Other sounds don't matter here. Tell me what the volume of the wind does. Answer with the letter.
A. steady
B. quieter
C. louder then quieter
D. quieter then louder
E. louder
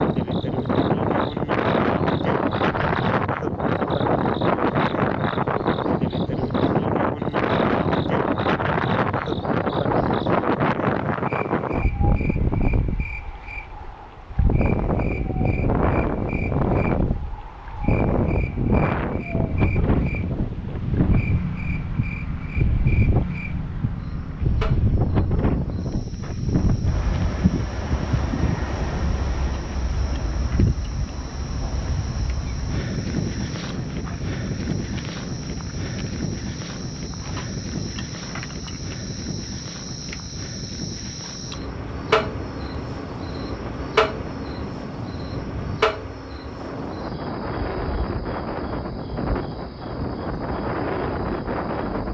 B.